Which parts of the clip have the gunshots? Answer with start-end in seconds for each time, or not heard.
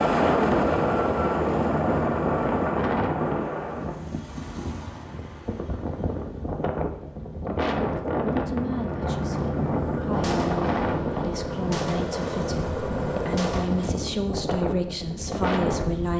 10.1-13.9.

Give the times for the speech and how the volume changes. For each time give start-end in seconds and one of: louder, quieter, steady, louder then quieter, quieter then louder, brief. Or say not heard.
8.3-16.1 louder.